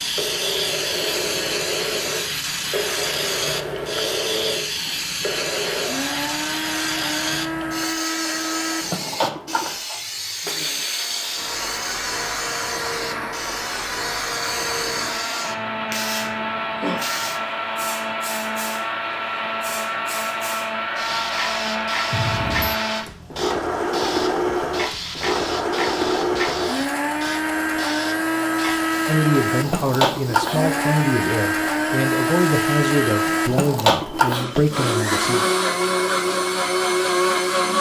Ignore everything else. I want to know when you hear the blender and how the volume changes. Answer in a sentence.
The blender can be heard from 0.1 to 37.7 s, getting louder.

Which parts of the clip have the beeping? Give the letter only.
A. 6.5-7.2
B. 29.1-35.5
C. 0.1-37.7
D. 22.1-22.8
D.